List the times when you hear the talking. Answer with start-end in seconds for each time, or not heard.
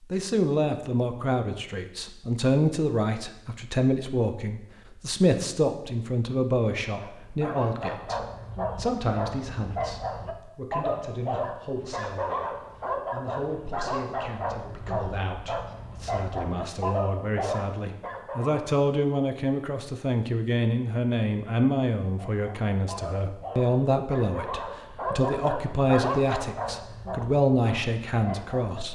0.1-28.9.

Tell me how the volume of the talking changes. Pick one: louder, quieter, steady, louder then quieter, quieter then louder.
quieter then louder.